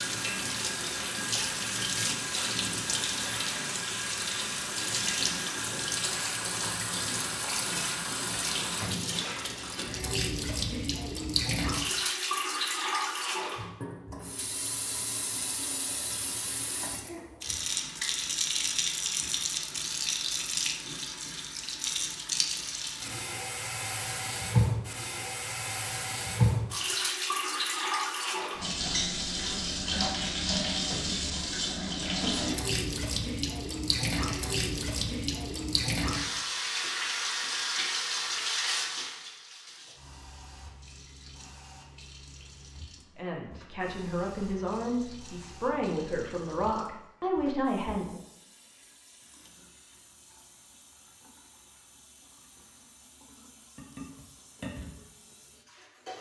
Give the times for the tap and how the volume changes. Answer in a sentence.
The tap can be heard from 0.0 to 56.1 s, getting quieter.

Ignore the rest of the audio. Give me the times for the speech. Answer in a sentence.
You can hear the speech from 43.1 to 48.2 s.